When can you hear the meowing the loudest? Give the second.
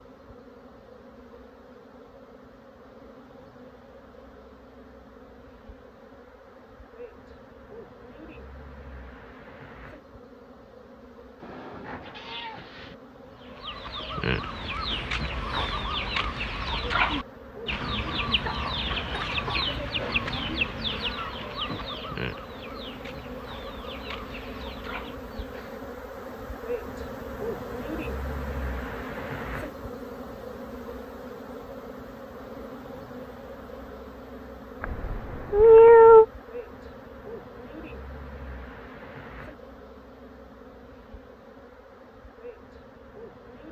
36 s.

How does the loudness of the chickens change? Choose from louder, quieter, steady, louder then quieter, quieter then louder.
quieter.